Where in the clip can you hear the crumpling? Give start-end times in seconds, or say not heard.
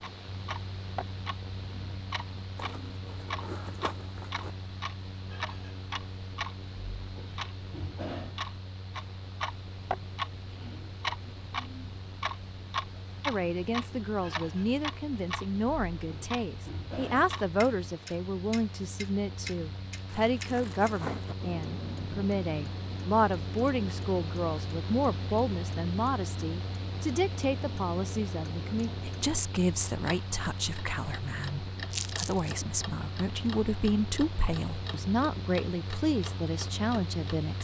2.5-4.5, 20.1-21.4, 31.9-32.5.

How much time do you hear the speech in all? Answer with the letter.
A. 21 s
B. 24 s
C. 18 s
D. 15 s
B.